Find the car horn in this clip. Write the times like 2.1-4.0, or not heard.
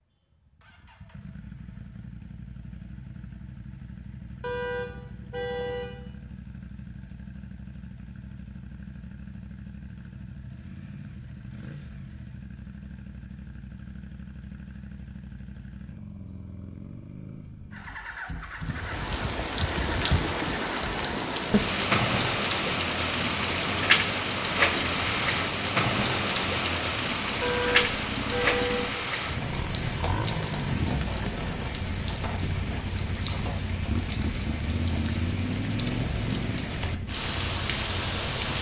4.4-6.0, 27.4-28.9.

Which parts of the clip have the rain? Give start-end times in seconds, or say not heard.
18.6-38.5.